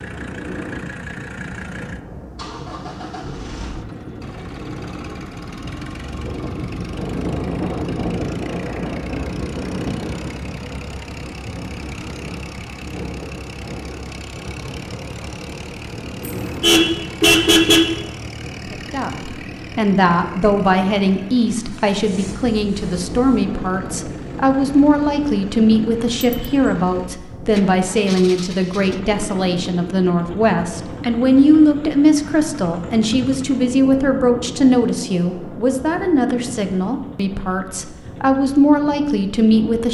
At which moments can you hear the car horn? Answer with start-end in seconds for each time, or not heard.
16.2-18.0.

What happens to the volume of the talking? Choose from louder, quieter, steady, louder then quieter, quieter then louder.
steady.